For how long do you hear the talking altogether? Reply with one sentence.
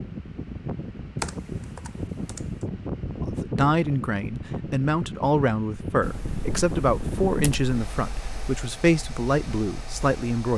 The talking can be heard for 7 seconds in total.